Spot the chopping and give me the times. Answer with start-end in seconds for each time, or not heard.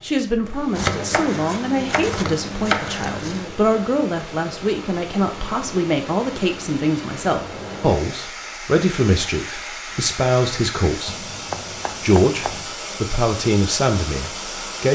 0.8-3.5, 11.1-12.7.